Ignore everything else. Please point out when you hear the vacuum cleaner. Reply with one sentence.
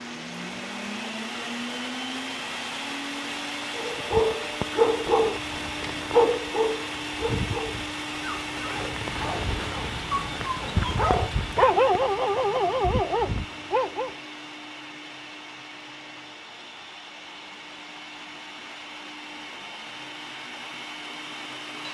You can hear the vacuum cleaner from 0.0 to 21.9 s.